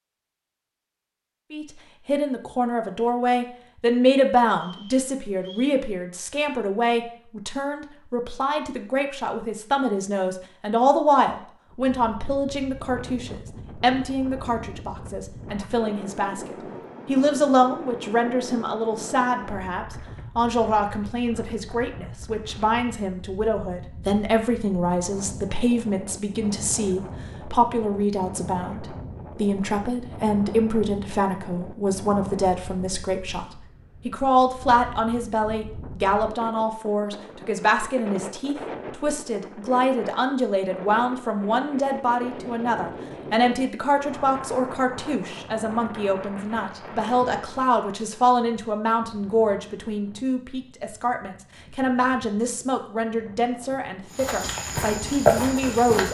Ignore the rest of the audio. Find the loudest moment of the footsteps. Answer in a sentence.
The volume of the footsteps peaks at 55 seconds.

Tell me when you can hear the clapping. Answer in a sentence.
The clapping can't be heard in this clip.